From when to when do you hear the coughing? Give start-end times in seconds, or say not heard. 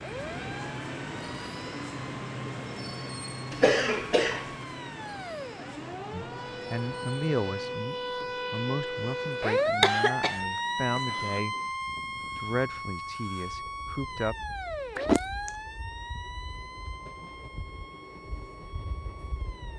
3.5-4.5, 9.6-11.4, 14.9-15.5.